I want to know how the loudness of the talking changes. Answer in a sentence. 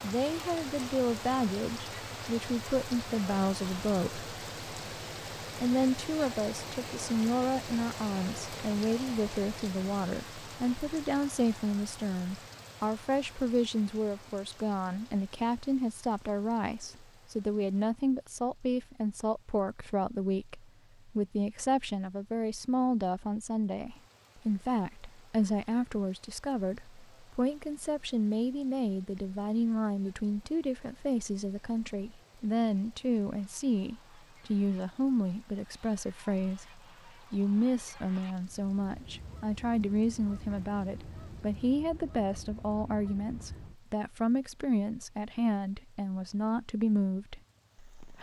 The volume of the talking stays about the same.